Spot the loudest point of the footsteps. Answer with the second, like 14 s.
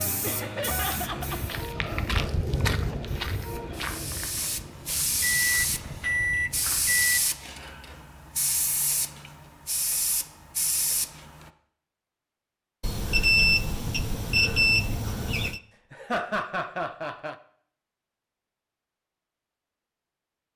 3 s.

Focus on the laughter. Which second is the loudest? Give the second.
16 s.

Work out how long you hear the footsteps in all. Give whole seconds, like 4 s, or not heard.
6 s.